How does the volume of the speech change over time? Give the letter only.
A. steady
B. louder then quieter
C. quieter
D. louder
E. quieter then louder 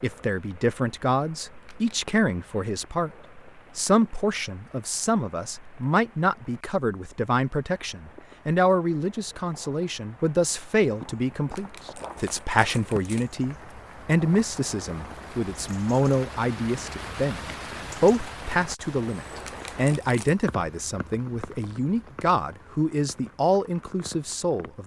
A.